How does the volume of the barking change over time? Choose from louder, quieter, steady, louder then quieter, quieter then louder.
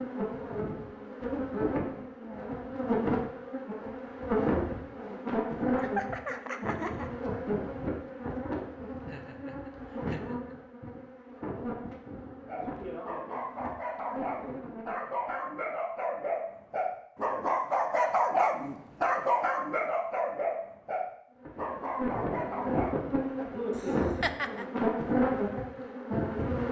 louder then quieter.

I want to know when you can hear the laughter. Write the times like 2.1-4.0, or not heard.
5.8-7.1, 9.0-10.6, 23.8-24.6.